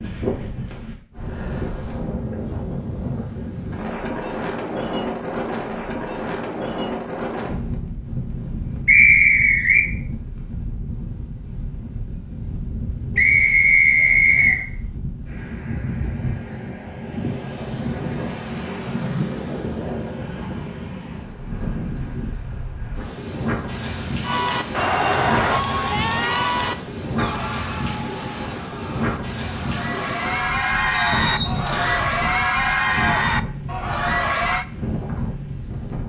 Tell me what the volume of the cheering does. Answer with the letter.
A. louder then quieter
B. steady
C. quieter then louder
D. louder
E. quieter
C.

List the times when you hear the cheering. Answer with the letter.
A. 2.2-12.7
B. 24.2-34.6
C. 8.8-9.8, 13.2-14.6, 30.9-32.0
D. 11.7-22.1
B.